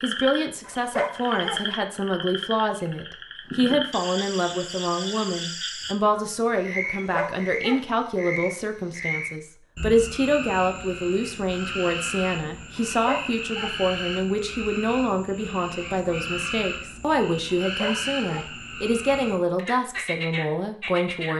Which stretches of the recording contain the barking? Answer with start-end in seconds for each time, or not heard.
0.6-1.6, 6.8-7.8, 12.8-13.8, 17.6-18.5.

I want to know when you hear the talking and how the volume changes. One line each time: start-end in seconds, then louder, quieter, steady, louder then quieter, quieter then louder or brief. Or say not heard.
0.0-21.3 steady.